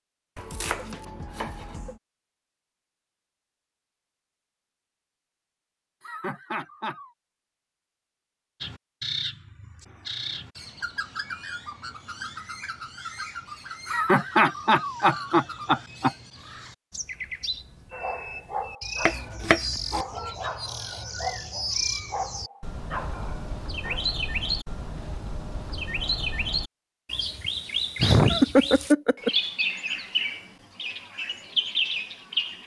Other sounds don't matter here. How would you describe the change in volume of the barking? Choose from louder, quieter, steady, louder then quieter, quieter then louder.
steady.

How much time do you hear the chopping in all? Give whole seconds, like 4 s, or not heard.
3 s.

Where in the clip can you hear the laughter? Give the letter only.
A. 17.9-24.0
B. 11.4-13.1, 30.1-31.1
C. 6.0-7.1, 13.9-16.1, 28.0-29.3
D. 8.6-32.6
C.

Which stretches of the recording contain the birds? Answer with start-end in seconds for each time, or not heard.
8.6-32.6.